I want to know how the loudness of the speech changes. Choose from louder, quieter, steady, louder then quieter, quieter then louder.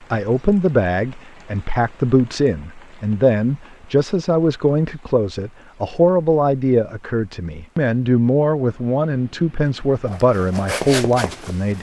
steady.